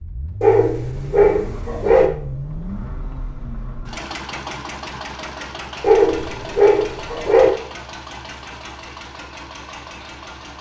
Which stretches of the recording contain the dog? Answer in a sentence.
The dog can be heard from 0.4 to 2.1 s and from 5.8 to 7.5 s.